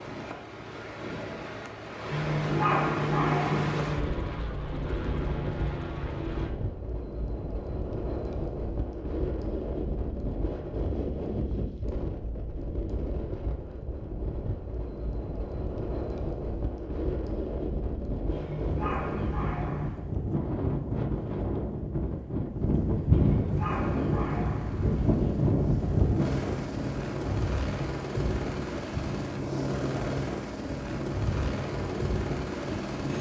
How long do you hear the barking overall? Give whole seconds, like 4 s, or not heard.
6 s.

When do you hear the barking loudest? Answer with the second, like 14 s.
3 s.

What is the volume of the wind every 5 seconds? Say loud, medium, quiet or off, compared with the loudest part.
medium, medium, medium, medium, loud, loud, medium.